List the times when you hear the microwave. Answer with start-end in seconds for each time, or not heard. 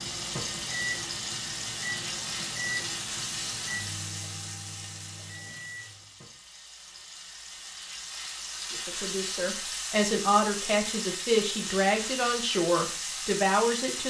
0.0-6.1.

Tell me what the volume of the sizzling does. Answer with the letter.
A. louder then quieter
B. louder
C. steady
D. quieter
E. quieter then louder
E.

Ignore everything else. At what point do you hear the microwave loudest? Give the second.
2 s.